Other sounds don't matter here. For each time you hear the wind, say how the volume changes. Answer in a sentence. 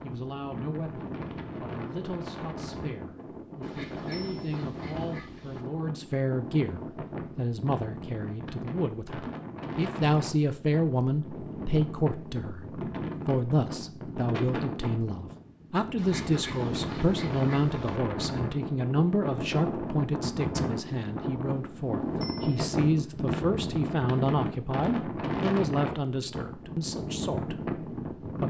The wind can be heard from 0.0 to 28.4 s, getting louder.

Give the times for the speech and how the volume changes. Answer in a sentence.
The speech can be heard from 0.0 to 27.6 s, getting louder.